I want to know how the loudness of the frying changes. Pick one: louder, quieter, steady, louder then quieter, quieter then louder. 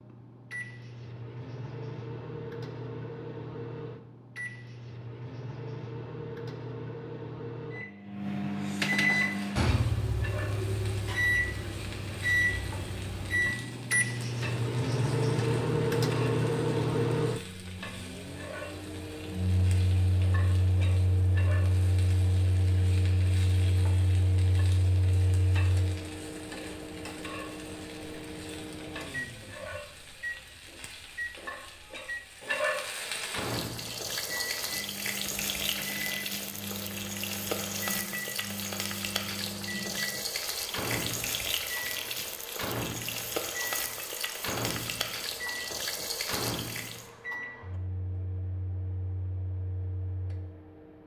louder.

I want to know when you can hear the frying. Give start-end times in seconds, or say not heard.
9.1-47.1.